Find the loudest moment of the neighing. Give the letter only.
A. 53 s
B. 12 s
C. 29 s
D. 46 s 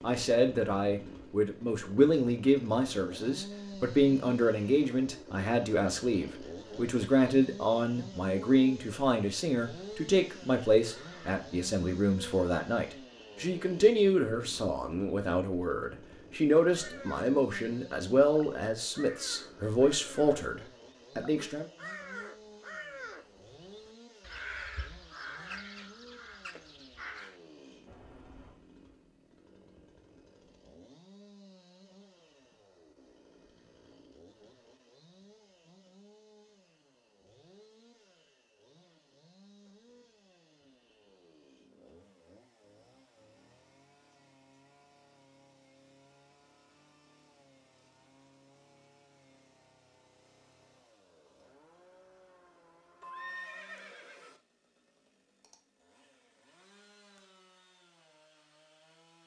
A.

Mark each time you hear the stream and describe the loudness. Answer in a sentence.
The stream can't be heard in this clip.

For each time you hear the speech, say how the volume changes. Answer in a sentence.
The speech can be heard from 0.0 to 21.6 s, at a steady volume.